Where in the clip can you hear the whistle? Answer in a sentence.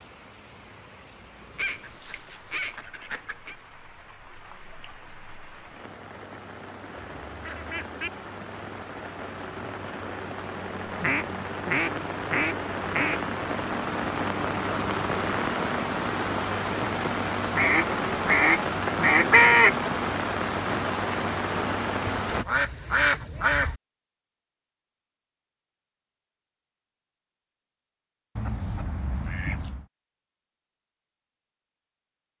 You can't hear the whistle here.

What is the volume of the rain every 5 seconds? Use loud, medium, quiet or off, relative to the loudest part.
quiet, quiet, loud, loud, loud, off, off.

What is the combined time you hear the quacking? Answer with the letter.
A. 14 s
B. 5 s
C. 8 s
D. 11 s
D.